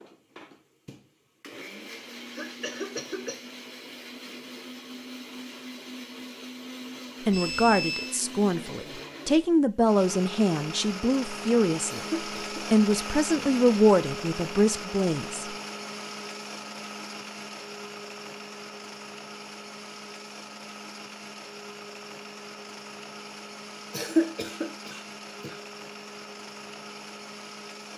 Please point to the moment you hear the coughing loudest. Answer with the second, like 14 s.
24 s.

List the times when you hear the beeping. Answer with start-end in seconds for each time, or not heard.
7.3-8.2.